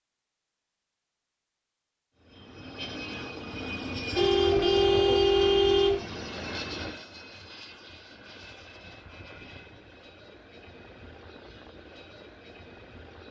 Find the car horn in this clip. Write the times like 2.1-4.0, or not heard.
4.2-6.0.